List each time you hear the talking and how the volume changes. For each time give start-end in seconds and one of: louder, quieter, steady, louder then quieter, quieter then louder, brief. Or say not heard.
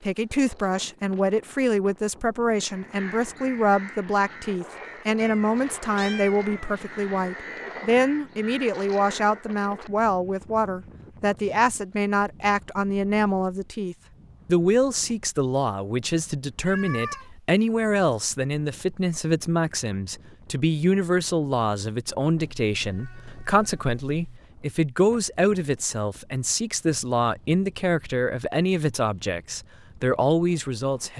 0.0-31.1 steady.